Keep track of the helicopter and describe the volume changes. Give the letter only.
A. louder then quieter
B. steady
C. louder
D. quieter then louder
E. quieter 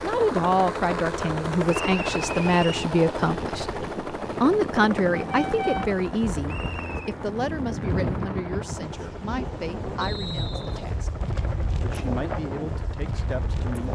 E.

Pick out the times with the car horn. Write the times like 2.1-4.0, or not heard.
5.2-6.0.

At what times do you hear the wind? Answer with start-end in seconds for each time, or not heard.
0.0-13.9.